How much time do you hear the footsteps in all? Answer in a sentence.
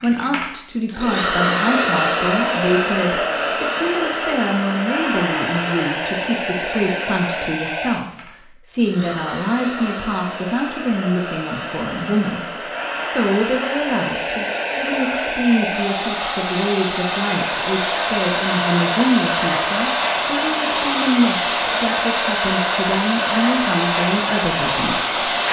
You can't hear the footsteps here.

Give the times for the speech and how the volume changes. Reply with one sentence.
You can hear the speech from 0.0 to 25.3 s, at a steady volume.